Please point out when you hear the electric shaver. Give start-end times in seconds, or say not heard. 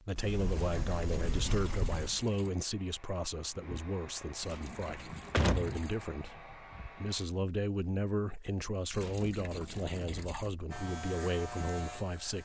10.7-12.4.